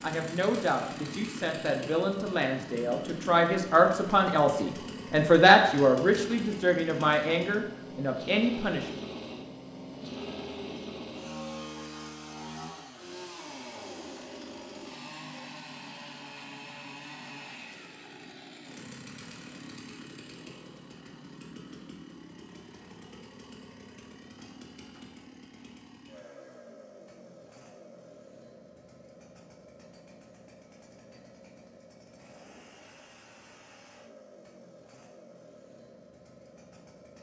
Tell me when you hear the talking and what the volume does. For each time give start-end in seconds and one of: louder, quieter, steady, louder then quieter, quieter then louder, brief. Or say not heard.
0.0-9.0 louder then quieter.